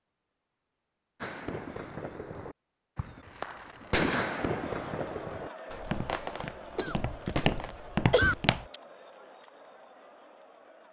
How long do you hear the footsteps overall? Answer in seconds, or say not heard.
3 s.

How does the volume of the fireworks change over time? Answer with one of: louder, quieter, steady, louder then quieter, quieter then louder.
louder then quieter.